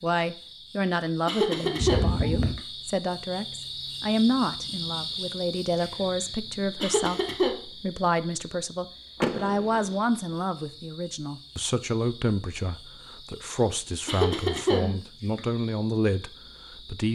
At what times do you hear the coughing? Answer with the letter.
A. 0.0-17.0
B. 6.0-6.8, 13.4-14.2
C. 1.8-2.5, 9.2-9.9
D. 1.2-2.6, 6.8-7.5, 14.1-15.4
D.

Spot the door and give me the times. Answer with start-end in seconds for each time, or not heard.
1.8-2.5, 9.2-9.9.